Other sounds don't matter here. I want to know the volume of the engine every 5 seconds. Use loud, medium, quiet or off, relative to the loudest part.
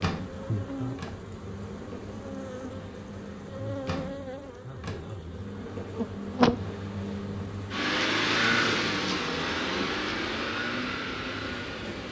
medium, loud, loud.